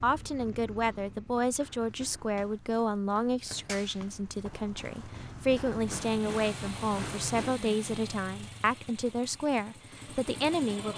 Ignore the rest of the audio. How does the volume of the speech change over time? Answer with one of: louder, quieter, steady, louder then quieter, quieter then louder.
steady.